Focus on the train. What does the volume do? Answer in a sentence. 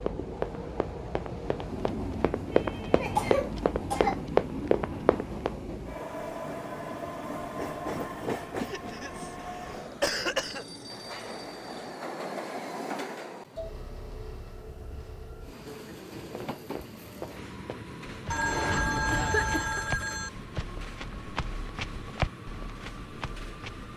The loudness of the train goes down.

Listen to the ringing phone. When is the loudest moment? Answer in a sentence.
The loudest moment of the ringing phone is at 19 seconds.